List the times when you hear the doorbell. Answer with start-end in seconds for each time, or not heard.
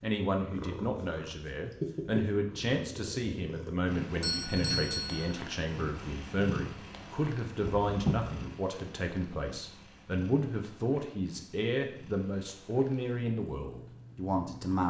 4.2-5.3, 7.6-8.4.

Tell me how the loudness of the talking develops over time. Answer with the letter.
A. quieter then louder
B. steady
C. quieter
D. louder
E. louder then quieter
B.